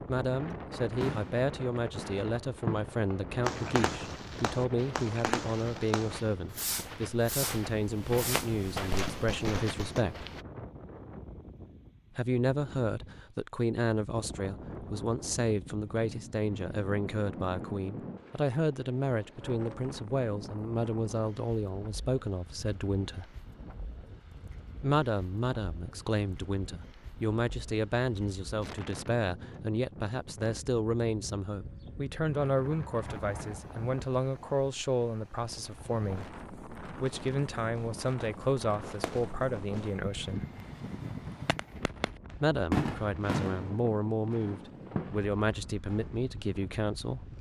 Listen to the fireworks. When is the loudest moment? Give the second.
43 s.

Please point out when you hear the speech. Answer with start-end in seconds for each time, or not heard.
0.1-10.2, 12.2-23.4, 24.8-40.5, 42.4-47.2.